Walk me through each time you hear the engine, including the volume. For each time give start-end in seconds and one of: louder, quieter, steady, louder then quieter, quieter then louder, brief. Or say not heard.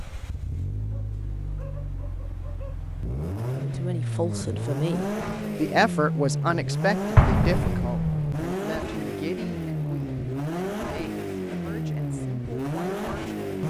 0.0-13.6 louder.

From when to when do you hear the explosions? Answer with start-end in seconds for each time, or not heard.
7.2-8.3.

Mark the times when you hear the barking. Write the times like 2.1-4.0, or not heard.
0.8-2.8.